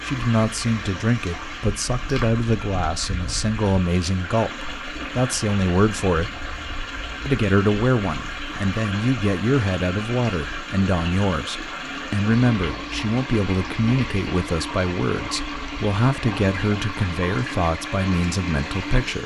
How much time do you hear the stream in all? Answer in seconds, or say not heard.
19 s.